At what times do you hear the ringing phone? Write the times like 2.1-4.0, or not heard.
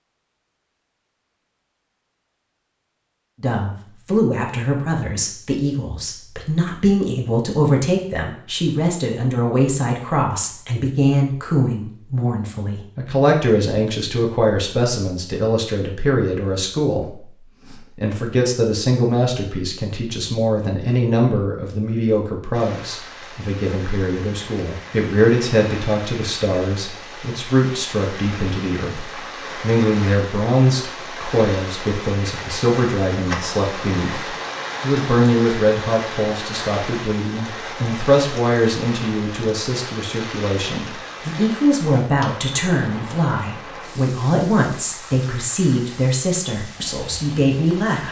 not heard.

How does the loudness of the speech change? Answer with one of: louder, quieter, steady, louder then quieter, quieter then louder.
steady.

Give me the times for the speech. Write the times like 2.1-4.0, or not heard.
3.4-48.0.